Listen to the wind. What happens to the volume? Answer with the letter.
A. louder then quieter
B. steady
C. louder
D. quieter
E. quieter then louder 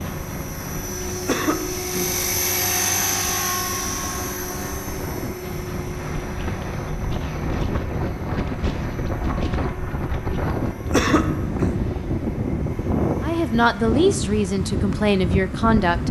C.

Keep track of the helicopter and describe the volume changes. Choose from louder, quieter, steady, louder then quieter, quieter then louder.
quieter.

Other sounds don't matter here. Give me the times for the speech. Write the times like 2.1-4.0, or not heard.
13.2-16.0.